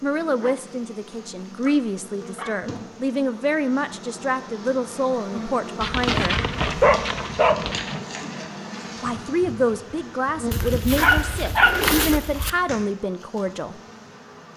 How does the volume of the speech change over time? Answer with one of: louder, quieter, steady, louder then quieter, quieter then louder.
steady.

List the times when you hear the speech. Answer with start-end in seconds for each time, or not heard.
0.0-6.5, 9.0-13.8.